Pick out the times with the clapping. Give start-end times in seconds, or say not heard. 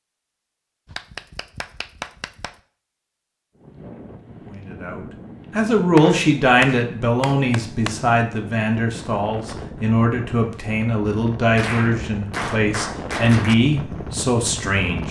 0.9-2.5, 6.0-8.0, 11.6-13.6.